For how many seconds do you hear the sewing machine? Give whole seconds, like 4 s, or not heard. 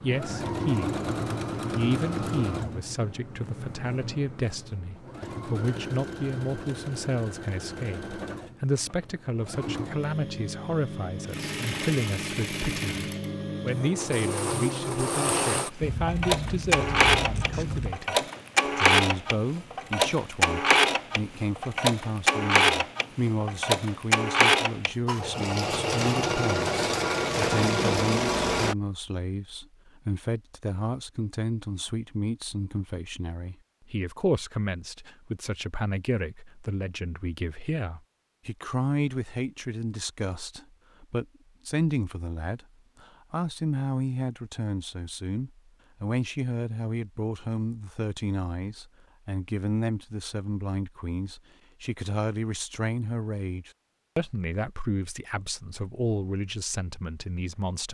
29 s.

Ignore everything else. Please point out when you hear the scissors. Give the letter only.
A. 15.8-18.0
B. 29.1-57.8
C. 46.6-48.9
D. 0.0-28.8
A.